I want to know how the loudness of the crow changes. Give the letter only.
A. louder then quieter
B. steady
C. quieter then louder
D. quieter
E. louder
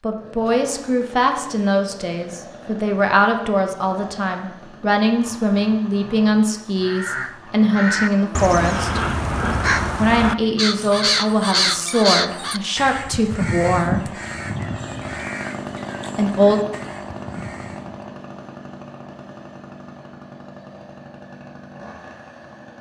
D.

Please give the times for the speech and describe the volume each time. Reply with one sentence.
You can hear the speech from 0.0 to 9.0 s, at a steady volume; from 9.9 to 14.1 s, at a steady volume; and briefly from 16.1 to 16.6 s.